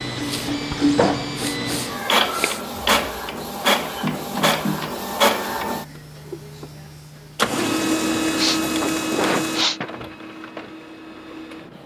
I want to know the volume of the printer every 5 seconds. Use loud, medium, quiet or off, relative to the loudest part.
loud, loud, quiet.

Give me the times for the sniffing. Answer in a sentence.
You can hear the sniffing from 0.2 to 2.6 s and from 8.3 to 9.9 s.